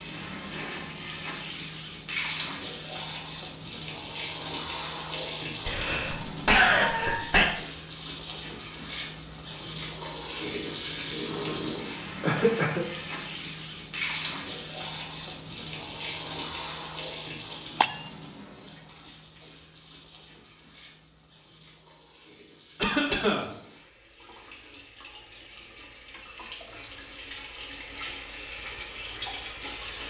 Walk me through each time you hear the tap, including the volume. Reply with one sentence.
The tap can be heard from 0.0 to 30.0 s, getting quieter then louder.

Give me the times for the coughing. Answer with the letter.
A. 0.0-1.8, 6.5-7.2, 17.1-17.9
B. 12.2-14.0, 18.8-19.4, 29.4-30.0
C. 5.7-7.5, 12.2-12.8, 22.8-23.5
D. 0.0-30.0
C.